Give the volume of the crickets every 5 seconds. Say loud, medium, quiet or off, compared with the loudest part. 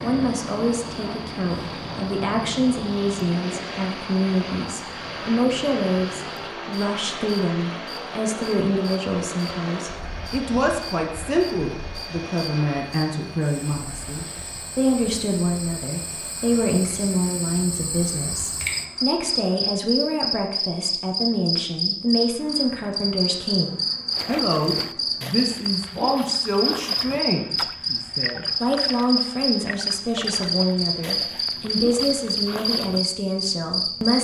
quiet, quiet, quiet, medium, loud, loud, loud.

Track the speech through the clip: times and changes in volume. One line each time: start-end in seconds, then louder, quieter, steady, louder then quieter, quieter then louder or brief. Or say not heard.
0.0-34.1 steady.